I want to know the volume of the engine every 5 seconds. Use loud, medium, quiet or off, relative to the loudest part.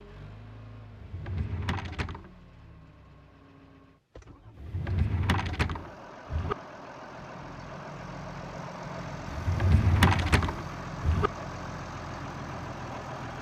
quiet, loud, loud.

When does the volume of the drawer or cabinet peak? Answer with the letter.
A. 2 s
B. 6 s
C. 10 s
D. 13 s
C.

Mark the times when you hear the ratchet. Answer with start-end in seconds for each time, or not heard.
not heard.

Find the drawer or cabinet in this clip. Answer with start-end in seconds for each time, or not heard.
0.9-2.3, 4.5-6.5, 9.2-11.3.